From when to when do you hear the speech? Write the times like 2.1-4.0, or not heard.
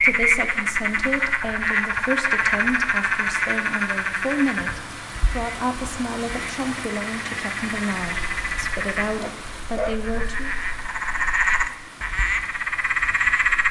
0.0-10.5.